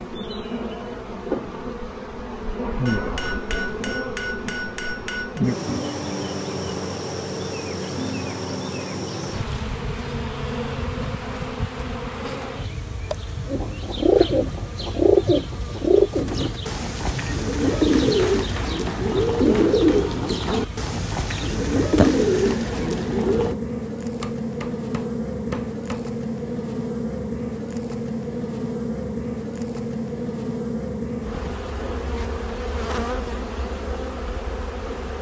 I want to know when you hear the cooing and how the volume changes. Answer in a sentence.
The cooing can be heard from 13.4 to 23.6 s, at a steady volume.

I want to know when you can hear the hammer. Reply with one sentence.
The hammer can be heard from 2.9 to 5.5 s, from 18.1 to 20.1 s and from 24.2 to 26.1 s.